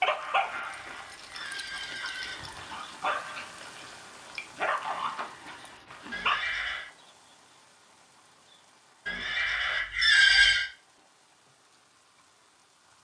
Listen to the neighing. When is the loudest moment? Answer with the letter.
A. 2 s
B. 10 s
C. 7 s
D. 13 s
B.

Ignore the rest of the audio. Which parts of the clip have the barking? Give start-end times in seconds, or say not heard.
0.0-6.4.